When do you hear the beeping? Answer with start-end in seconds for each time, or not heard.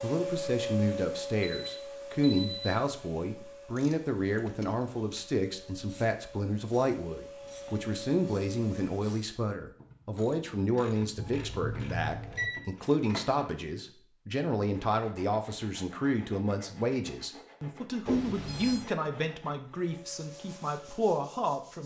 1.6-2.8, 11.2-12.5, 18.1-18.9.